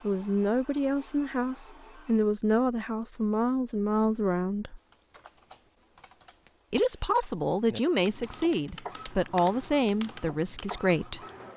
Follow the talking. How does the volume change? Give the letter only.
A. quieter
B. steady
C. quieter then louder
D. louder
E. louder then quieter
B.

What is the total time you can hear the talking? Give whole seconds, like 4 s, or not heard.
9 s.